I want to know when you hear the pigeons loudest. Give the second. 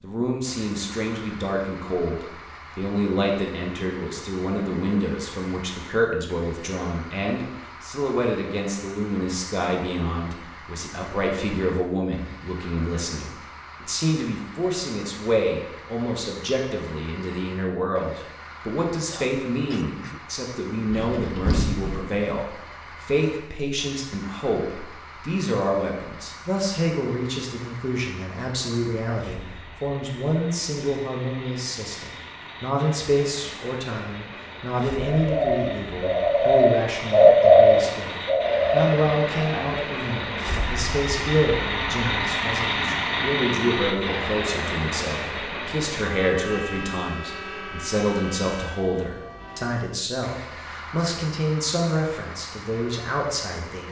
37 s.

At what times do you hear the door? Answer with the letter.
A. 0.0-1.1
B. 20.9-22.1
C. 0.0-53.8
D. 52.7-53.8
B.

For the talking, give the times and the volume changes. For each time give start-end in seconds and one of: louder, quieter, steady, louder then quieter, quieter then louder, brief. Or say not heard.
0.0-53.8 steady.